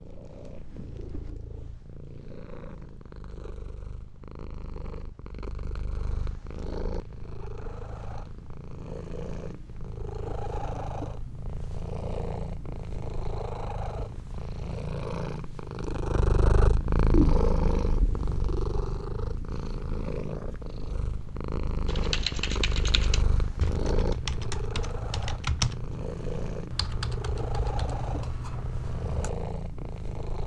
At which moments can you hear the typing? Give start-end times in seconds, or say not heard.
21.9-29.3.